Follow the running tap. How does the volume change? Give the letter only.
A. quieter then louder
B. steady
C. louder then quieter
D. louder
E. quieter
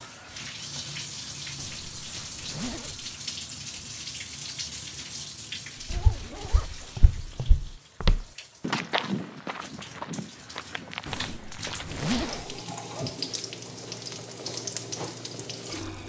A.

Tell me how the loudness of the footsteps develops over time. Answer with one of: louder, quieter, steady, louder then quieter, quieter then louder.
louder then quieter.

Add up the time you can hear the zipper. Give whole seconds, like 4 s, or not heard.
4 s.